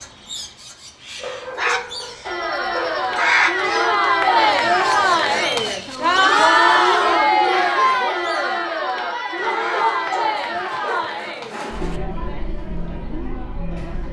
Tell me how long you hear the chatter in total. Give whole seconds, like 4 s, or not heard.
12 s.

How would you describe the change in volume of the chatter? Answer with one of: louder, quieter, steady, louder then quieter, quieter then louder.
quieter.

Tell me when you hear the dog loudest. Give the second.
10 s.